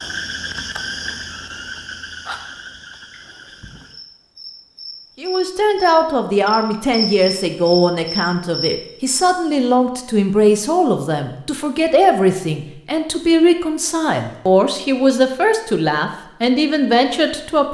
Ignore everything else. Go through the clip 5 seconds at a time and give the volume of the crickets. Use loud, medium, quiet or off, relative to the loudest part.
medium, loud, off, off.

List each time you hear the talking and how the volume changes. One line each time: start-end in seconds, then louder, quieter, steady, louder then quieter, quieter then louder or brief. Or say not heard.
5.2-17.7 steady.